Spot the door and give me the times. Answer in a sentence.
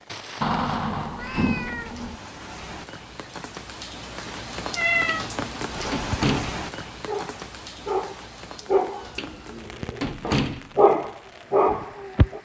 You can hear the door from 0.4 to 2.1 s, from 5.0 to 6.6 s and from 9.2 to 10.7 s.